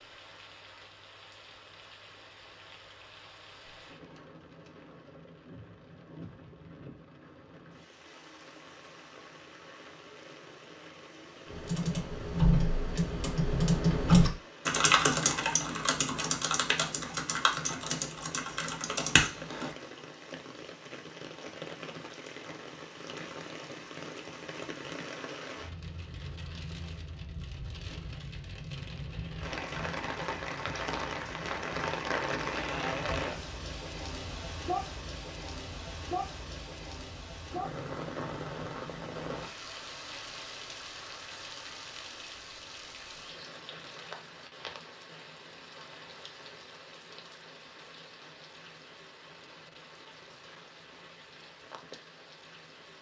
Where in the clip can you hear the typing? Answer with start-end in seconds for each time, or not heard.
11.4-19.8.